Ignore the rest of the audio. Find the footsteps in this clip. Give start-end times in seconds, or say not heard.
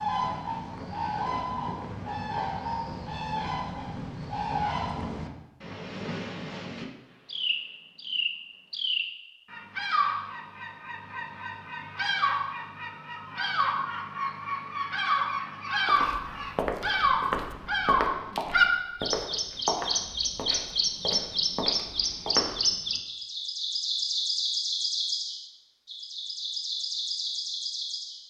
15.8-22.6.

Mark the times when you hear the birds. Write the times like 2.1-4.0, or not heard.
0.0-28.2.